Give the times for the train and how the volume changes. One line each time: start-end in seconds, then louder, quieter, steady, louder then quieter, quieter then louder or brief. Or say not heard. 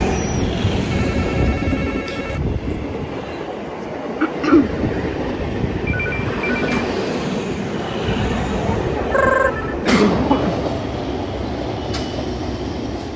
0.0-13.1 steady.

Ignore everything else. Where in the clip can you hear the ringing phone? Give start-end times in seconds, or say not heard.
0.9-2.4, 5.8-7.0, 9.1-9.8.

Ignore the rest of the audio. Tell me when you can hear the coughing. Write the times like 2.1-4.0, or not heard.
4.2-4.7, 9.8-10.7.